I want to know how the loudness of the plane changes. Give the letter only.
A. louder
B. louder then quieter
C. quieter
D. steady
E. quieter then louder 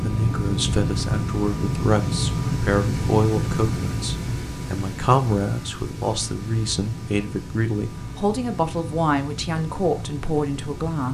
C.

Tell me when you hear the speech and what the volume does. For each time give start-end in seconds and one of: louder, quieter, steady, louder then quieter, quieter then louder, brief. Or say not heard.
0.0-11.0 steady.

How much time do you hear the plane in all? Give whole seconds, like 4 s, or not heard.
11 s.